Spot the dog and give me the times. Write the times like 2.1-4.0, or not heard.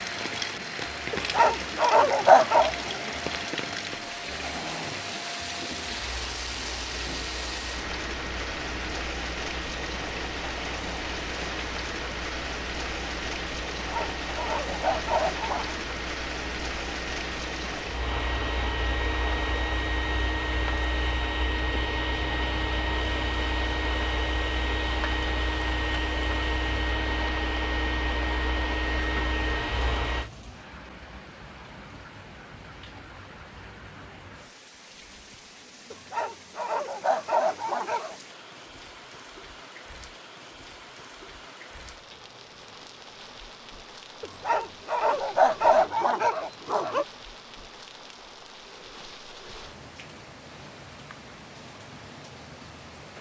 1.1-2.7, 13.9-15.8, 35.9-38.1, 44.2-47.0.